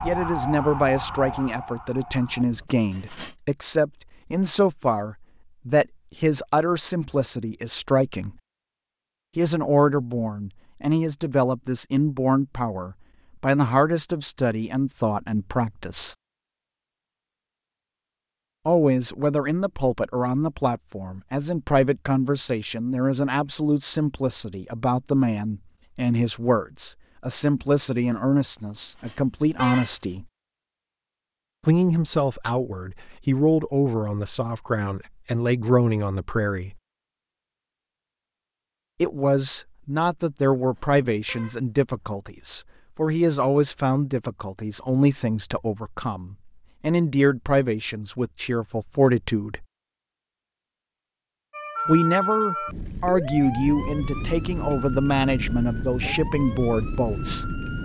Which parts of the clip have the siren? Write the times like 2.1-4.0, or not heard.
0.0-2.6, 51.5-57.8.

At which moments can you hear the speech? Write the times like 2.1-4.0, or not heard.
0.0-8.3, 9.3-16.1, 18.6-30.2, 31.6-36.8, 39.0-49.6, 51.9-57.5.